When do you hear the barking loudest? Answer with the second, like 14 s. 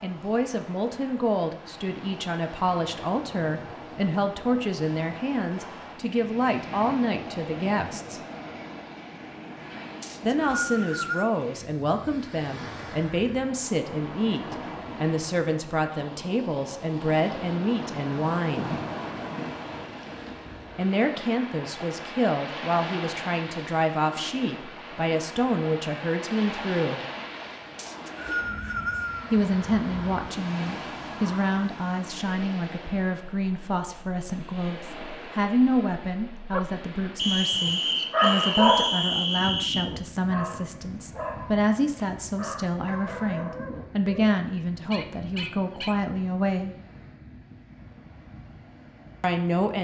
39 s.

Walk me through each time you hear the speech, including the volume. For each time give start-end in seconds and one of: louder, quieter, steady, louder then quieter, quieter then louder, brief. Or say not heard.
0.0-8.2 steady
10.2-18.7 steady
20.8-27.0 steady
29.3-46.8 steady
49.2-49.7 brief.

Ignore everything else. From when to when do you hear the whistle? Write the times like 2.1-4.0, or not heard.
10.0-11.3, 27.8-29.4, 37.1-39.9.